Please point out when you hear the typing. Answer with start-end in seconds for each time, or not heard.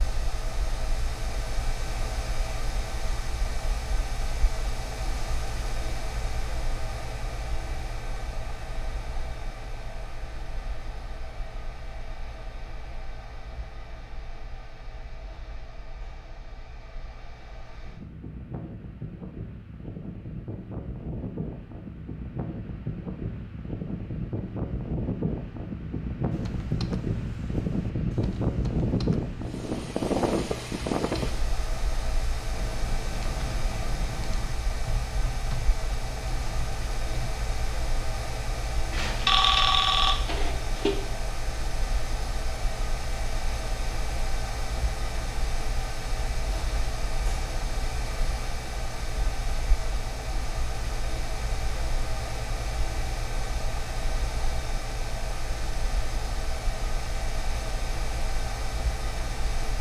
26.3-37.3.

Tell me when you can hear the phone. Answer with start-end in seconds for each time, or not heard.
38.9-41.0.